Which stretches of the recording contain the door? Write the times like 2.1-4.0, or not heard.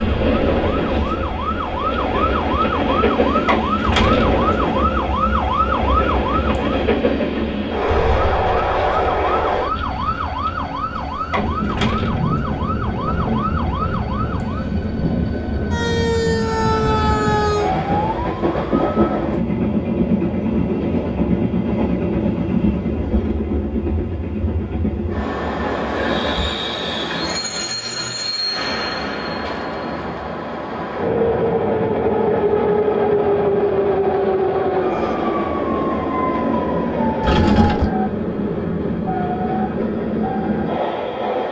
37.2-37.9.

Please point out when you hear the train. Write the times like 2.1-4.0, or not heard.
0.0-41.4.